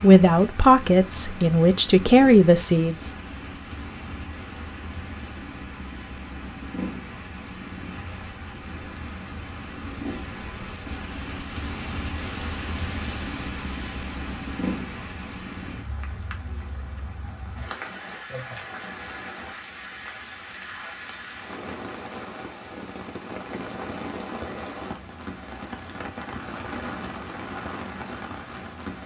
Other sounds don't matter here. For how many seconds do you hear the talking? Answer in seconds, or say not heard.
3 s.